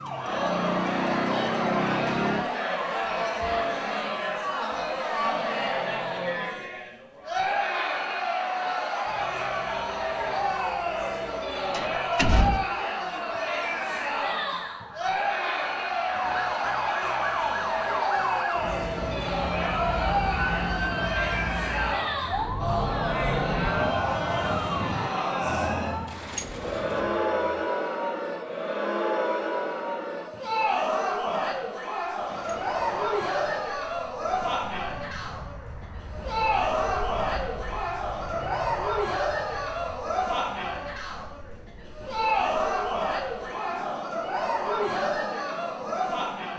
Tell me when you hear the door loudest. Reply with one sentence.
The loudest moment of the door is at 12 seconds.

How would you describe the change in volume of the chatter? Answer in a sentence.
The volume of the chatter stays about the same.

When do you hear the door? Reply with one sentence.
You can hear the door from 11.7 to 12.7 s, from 26.1 to 27.1 s and from 32.2 to 33.1 s.